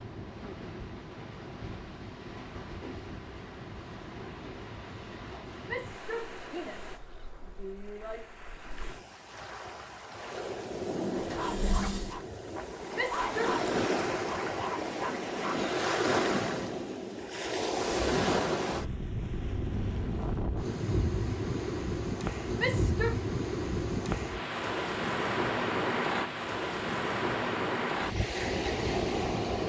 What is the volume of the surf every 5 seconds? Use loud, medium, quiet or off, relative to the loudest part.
quiet, quiet, loud, loud, loud, loud.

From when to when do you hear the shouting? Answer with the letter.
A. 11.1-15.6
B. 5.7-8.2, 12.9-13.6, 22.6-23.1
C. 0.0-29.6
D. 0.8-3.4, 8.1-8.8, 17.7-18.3
B.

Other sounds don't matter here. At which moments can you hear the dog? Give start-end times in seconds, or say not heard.
11.1-15.6.